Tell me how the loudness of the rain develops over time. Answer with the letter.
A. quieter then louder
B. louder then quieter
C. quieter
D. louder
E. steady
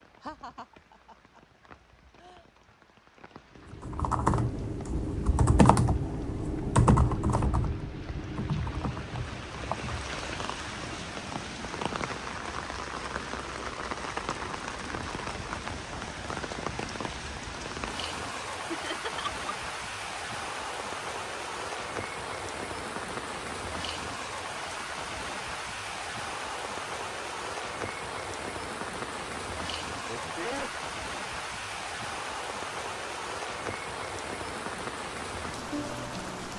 D.